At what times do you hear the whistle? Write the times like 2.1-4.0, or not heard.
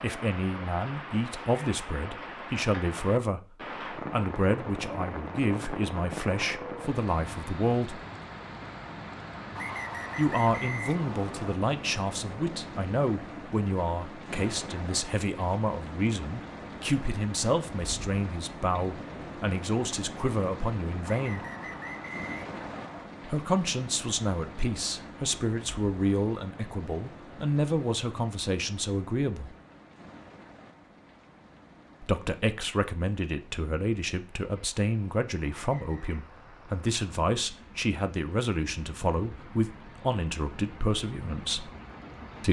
9.6-11.6, 21.1-23.1, 35.5-36.2.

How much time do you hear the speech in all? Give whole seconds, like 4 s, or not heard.
35 s.